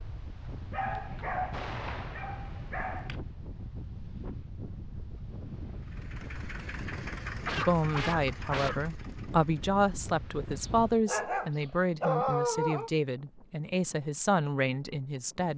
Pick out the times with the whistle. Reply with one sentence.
The whistle can't be heard in this clip.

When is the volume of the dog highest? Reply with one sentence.
The loudest moment of the dog is at 12 seconds.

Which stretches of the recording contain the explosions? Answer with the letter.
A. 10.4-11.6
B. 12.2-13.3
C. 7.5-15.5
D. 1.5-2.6
D.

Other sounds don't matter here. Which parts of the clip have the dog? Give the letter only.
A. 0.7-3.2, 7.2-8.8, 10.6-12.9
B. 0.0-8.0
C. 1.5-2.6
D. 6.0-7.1
A.